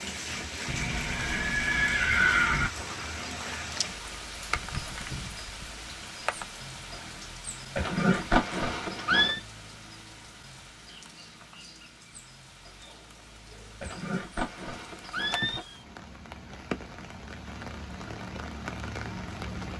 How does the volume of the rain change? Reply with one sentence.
The loudness of the rain goes down, then up.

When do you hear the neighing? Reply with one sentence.
The neighing can be heard from 0.7 to 2.7 s, from 7.8 to 9.4 s and from 13.8 to 15.6 s.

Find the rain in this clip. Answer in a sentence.
You can hear the rain from 0.0 to 19.7 s.